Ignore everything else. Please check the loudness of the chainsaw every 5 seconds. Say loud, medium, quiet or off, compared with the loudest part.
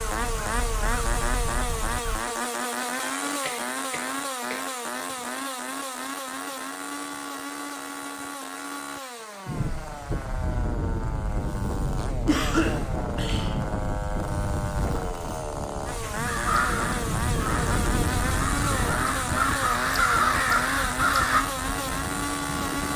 loud, medium, medium, loud, loud.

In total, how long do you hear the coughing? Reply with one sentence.
The coughing can be heard for 3 seconds in total.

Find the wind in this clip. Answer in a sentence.
The wind can be heard from 9.4 to 22.9 s.